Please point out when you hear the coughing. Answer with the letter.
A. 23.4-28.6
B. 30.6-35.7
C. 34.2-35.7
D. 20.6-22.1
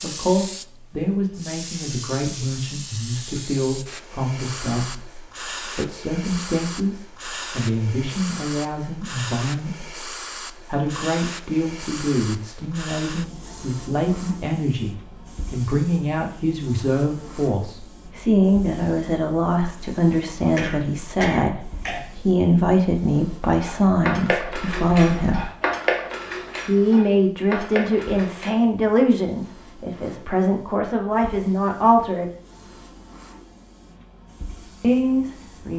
D.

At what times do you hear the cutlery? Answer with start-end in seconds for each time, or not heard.
23.4-28.6.